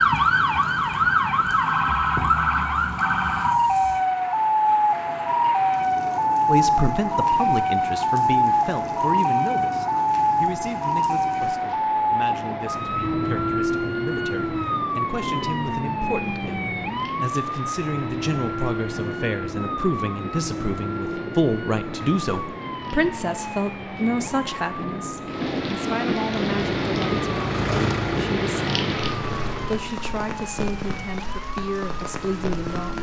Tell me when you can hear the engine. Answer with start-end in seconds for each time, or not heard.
26.3-29.9.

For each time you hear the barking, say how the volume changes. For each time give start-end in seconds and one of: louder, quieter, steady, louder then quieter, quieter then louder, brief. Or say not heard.
not heard.